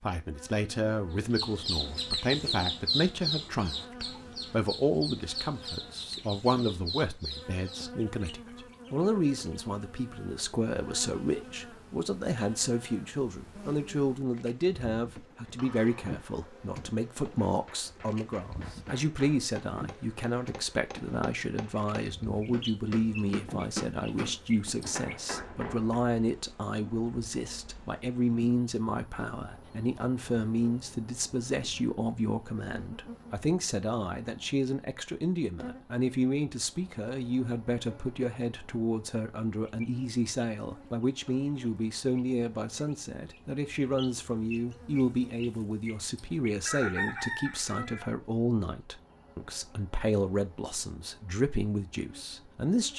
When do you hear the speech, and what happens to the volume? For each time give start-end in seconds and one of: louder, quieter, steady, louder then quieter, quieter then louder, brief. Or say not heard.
0.0-52.9 steady.